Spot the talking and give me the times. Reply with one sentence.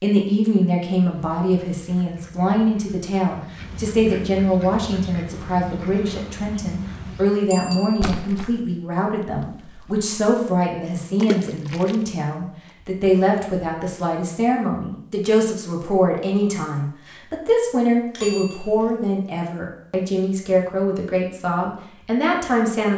You can hear the talking from 0.0 to 22.9 s.